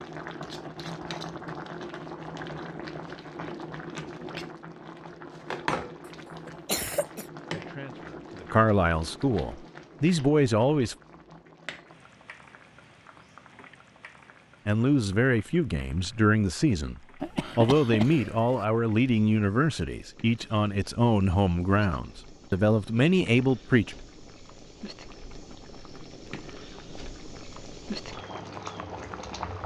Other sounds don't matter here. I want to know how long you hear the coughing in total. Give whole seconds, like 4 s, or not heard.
2 s.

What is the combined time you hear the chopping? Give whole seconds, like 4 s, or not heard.
not heard.